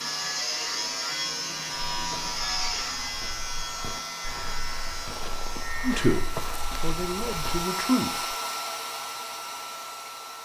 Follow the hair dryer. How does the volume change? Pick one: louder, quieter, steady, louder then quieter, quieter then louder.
louder.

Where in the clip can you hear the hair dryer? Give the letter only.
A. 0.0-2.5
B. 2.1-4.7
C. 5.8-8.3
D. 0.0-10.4
D.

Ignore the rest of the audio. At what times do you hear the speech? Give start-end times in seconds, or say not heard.
5.8-8.3.